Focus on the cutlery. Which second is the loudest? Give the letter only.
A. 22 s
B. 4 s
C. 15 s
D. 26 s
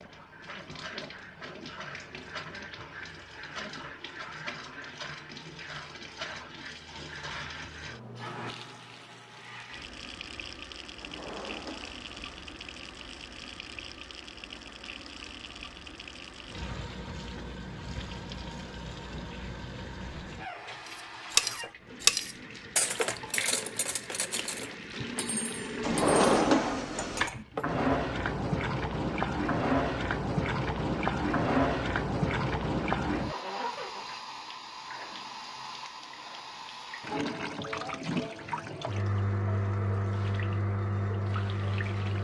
A.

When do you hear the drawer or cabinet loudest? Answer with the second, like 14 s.
26 s.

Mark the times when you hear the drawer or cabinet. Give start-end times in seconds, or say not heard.
11.0-12.4, 25.8-27.3.